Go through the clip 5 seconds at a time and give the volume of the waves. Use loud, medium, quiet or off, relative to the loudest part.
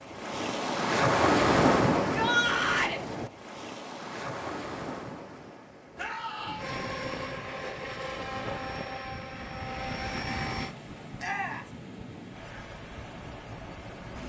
loud, quiet, quiet.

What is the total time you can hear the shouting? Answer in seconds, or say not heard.
2 s.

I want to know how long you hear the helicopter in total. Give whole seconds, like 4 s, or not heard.
4 s.